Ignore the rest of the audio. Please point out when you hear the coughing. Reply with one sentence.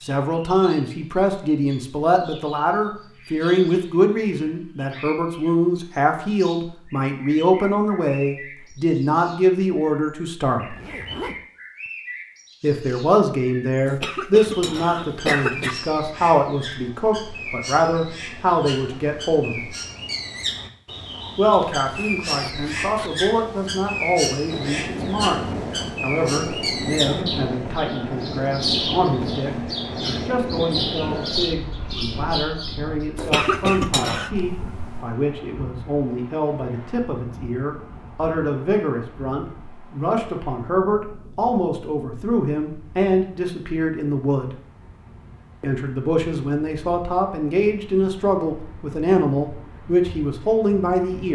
The coughing can be heard from 13.8 to 15.8 s and from 33.1 to 34.3 s.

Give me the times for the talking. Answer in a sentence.
The talking can be heard from 0.0 to 10.8 s, from 12.6 to 19.7 s, from 21.4 to 25.4 s, from 26.0 to 44.5 s and from 45.6 to 51.3 s.